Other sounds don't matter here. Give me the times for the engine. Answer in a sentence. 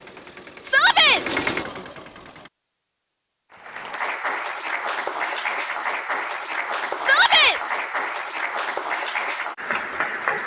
The engine can be heard from 0.0 to 2.5 s.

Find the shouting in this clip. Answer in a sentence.
The shouting can be heard from 0.6 to 1.2 s and from 7.0 to 7.6 s.